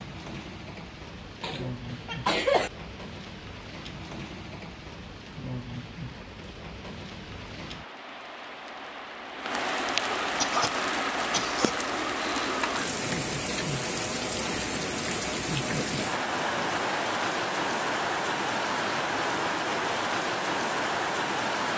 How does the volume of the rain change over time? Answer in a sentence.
The volume of the rain goes up.